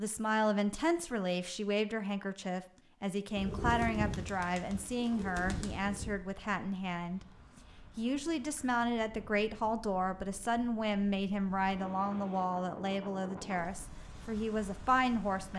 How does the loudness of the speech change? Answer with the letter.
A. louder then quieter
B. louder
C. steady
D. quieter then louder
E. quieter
C.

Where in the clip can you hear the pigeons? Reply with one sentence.
The pigeons can be heard from 3.4 to 6.2 s.